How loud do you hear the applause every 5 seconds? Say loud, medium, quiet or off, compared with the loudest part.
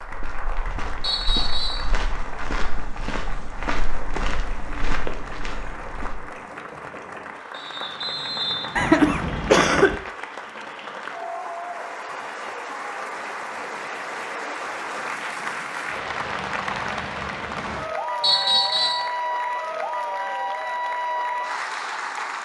medium, medium, medium, loud, loud.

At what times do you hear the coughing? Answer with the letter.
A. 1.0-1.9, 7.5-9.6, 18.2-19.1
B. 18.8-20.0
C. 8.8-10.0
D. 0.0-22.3
C.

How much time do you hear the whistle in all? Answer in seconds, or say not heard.
4 s.